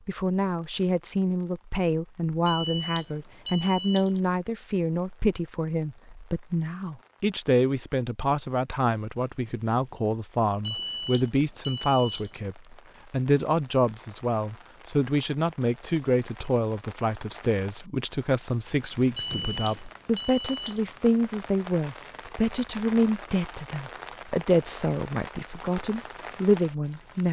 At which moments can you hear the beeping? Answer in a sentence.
You can hear the beeping from 2.5 to 4.2 s, from 10.6 to 12.4 s and from 19.1 to 20.9 s.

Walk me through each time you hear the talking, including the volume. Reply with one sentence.
You can hear the talking from 0.1 to 27.2 s, at a steady volume.